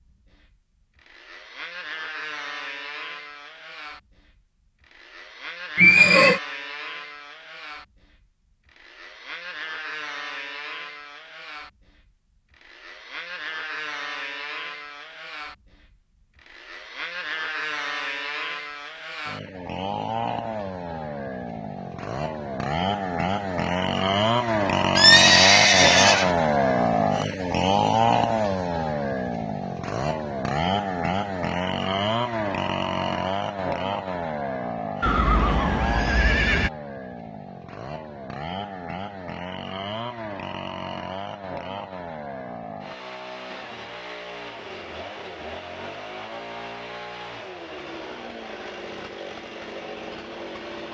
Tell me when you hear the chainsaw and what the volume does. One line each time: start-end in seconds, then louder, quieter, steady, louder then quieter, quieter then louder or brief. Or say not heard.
0.0-50.8 louder then quieter.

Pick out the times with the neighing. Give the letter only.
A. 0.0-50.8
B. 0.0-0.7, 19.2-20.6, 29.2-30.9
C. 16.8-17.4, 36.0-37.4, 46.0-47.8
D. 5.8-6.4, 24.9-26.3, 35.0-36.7
D.